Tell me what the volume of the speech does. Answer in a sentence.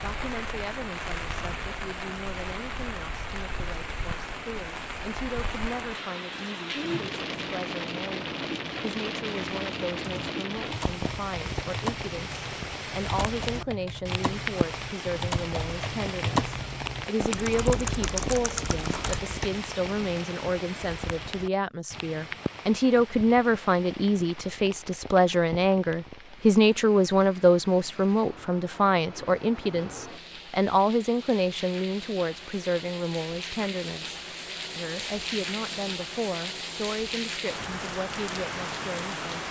The volume of the speech goes up, then down.